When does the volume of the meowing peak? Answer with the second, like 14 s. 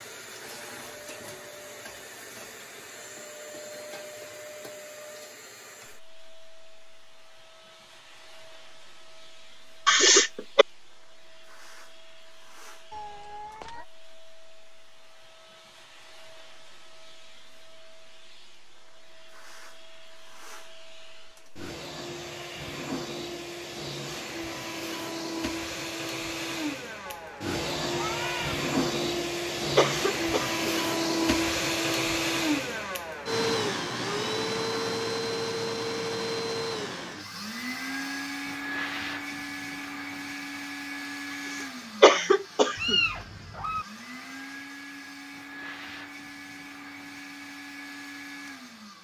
43 s.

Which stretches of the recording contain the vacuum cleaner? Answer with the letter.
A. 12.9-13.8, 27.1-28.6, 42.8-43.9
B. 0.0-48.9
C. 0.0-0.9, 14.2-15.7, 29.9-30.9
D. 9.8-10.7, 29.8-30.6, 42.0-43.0
B.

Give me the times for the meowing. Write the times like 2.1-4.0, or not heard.
12.9-13.8, 27.1-28.6, 42.8-43.9.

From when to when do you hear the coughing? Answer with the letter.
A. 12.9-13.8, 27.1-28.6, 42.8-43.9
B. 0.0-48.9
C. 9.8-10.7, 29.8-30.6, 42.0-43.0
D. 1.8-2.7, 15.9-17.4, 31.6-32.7
C.